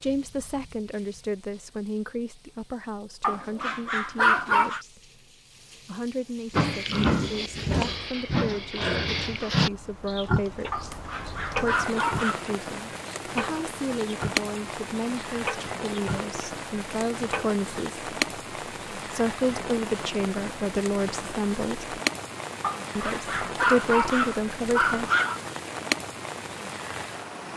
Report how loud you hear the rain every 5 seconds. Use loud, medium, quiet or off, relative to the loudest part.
quiet, quiet, loud, loud, loud, loud.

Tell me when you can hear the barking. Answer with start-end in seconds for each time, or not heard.
3.2-4.8, 10.7-12.4, 22.6-25.4.